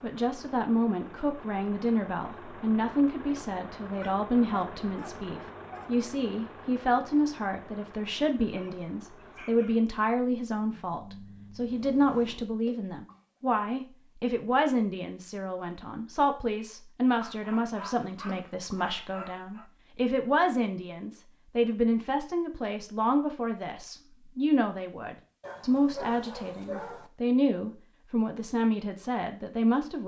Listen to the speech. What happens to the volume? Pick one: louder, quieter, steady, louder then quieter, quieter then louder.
steady.